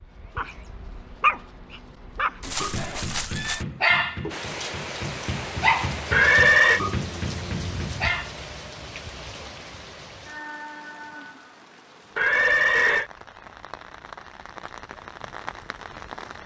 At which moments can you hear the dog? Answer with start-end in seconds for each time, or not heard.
0.0-8.3.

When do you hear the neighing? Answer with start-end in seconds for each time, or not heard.
2.4-3.6, 6.1-6.8, 12.2-13.1.